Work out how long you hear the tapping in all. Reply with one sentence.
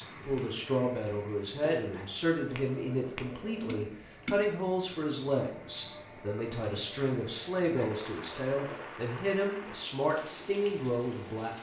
You can hear the tapping for 2 seconds altogether.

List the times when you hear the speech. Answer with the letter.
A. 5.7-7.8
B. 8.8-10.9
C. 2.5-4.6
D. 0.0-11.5
D.